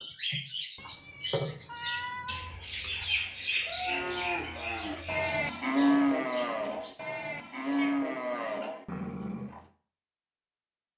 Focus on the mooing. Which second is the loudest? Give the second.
6 s.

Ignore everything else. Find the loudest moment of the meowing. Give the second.
2 s.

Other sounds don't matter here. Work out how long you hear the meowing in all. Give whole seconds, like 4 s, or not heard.
3 s.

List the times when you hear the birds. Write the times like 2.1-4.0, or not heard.
0.0-7.0.